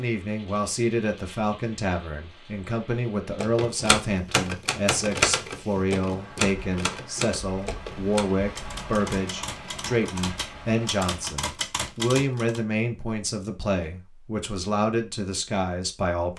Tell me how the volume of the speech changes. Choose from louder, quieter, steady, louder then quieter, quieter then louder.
steady.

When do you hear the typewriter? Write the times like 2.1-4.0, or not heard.
3.4-12.6.